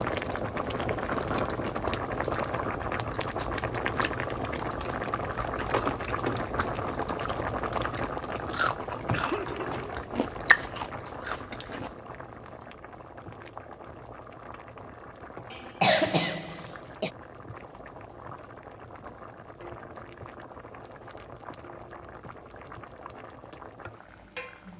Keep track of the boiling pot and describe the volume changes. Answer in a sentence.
The volume of the boiling pot goes down.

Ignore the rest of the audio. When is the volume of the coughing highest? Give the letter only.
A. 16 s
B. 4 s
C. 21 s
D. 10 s
A.